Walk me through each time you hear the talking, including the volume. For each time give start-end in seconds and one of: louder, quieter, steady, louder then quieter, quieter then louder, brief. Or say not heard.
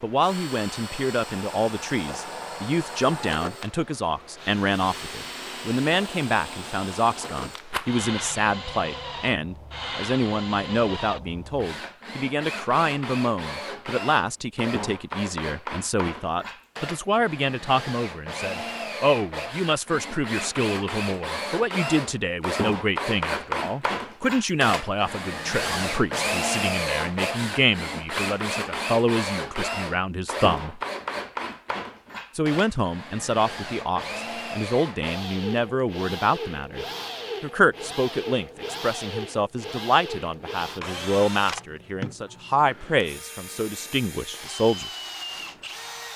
0.0-30.8 steady
32.4-44.9 steady.